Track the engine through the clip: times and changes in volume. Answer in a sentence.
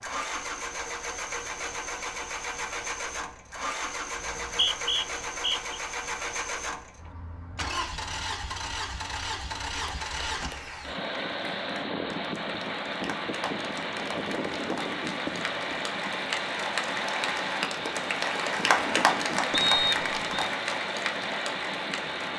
The engine can be heard from 0.0 to 22.3 s, at a steady volume.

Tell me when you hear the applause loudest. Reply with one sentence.
The loudest moment of the applause is at 19 seconds.